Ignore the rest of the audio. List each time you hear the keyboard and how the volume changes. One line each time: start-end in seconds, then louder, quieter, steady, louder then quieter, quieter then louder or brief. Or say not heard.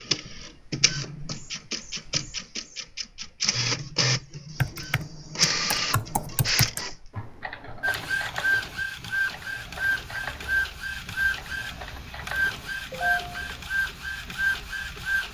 4.5-13.7 quieter.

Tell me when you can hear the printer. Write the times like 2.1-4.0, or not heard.
0.0-15.2.